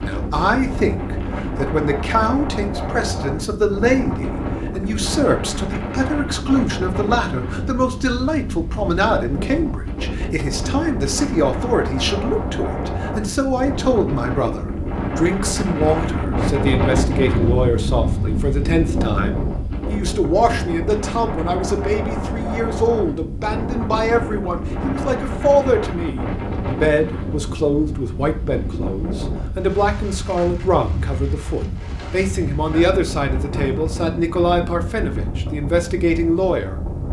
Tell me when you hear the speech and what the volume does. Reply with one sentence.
You can hear the speech from 0.0 to 36.8 s, at a steady volume.